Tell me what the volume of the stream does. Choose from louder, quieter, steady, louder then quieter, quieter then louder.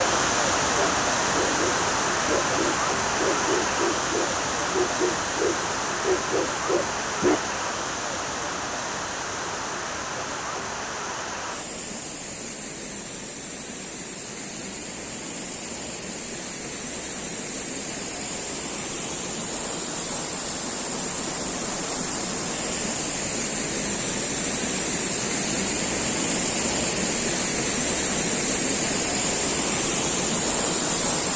quieter then louder.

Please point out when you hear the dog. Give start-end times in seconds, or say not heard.
0.8-7.5.